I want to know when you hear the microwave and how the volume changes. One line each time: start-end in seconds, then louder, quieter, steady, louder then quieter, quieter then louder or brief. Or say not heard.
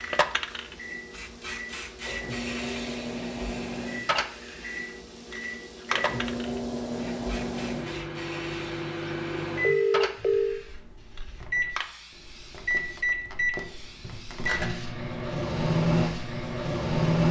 0.0-17.2 louder.